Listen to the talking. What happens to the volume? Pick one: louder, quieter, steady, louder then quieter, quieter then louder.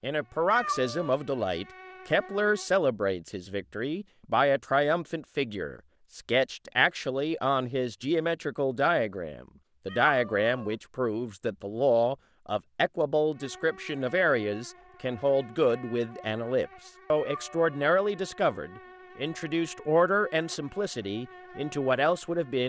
steady.